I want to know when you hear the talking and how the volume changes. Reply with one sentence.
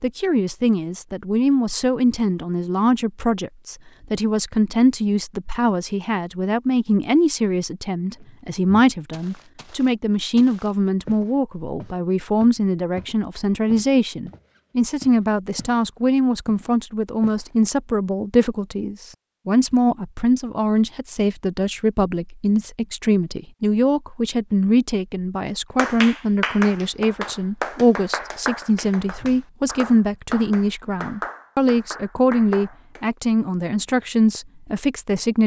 You can hear the talking from 0.0 to 35.4 s, at a steady volume.